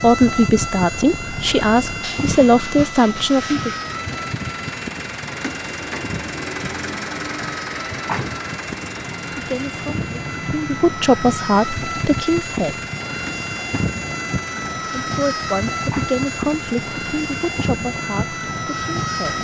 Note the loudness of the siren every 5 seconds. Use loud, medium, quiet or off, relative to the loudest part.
loud, medium, loud, loud.